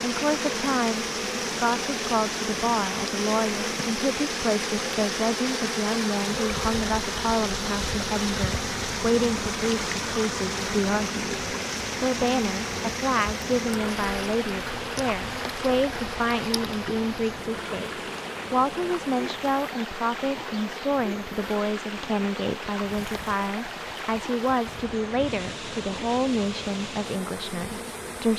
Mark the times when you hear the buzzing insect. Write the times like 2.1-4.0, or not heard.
0.0-28.3.